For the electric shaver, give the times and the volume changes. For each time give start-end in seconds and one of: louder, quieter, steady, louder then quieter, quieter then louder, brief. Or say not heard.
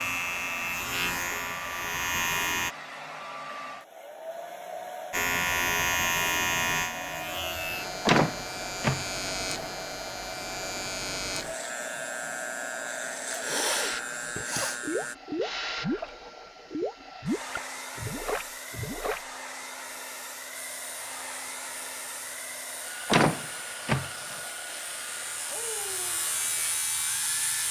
0.0-2.8 brief
5.1-15.2 quieter
20.5-27.6 louder.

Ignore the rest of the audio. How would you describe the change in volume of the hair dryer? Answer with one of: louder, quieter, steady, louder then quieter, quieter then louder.
steady.